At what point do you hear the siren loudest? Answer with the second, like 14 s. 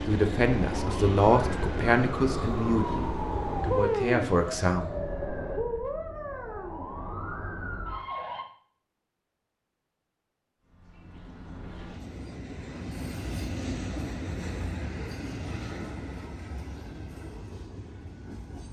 4 s.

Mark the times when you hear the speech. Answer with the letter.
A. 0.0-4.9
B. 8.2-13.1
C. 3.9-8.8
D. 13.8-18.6
A.